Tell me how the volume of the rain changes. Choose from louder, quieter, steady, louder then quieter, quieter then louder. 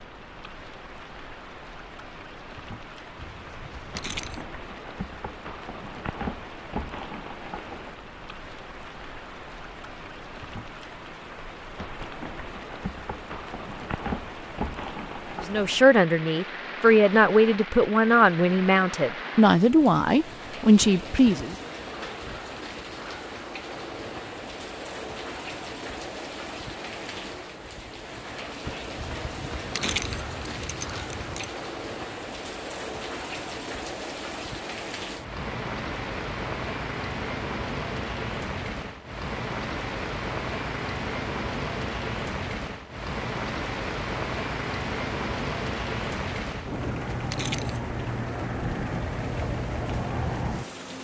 louder.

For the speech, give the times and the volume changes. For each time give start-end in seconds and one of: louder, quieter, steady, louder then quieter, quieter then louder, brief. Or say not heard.
15.4-21.6 steady.